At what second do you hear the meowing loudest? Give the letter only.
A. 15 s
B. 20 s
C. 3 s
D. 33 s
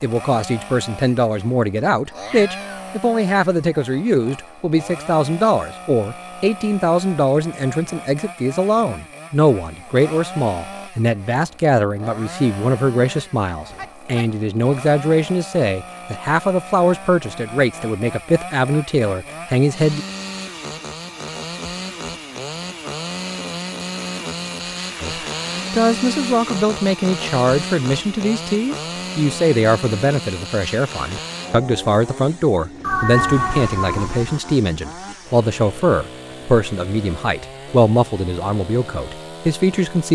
D.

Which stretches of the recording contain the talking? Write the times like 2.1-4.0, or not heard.
0.0-20.1, 25.0-40.1.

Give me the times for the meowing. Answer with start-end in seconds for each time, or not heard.
2.0-2.9, 13.7-14.3, 32.8-34.1.